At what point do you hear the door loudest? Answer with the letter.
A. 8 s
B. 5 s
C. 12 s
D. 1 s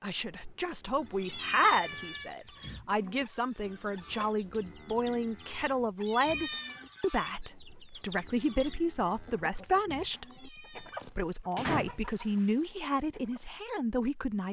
C.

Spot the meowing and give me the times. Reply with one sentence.
You can hear the meowing from 1.2 to 2.4 s, from 6.0 to 6.8 s and from 10.2 to 11.1 s.